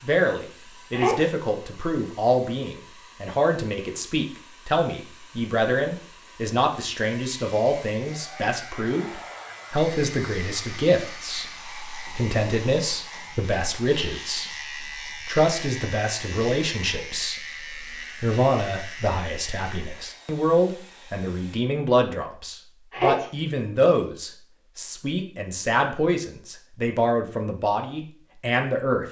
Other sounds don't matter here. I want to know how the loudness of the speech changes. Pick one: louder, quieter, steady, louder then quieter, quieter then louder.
steady.